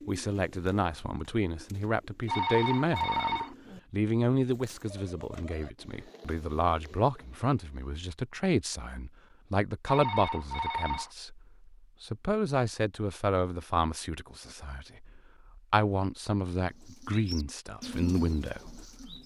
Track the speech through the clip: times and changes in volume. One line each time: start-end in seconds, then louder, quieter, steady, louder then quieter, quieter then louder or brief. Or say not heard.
0.1-19.2 steady.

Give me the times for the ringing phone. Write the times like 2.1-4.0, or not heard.
2.2-3.5, 9.8-11.1.